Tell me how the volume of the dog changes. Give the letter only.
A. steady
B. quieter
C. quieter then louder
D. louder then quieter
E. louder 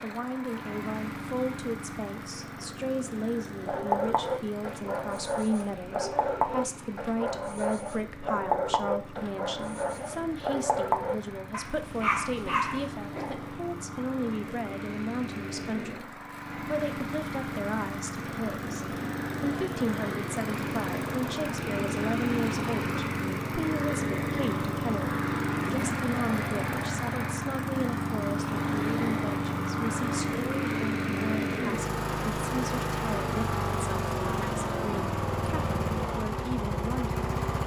A.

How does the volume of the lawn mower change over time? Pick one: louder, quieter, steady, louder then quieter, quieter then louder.
louder.